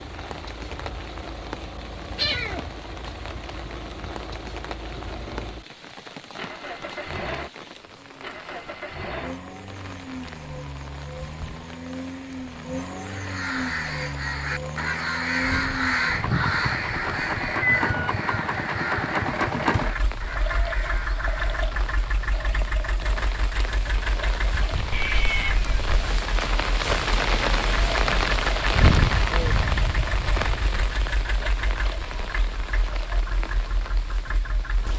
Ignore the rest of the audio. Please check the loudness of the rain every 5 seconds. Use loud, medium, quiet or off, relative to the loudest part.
quiet, quiet, quiet, quiet, quiet, loud, medium.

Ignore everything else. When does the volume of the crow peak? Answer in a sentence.
The loudest moment of the crow is at 16 seconds.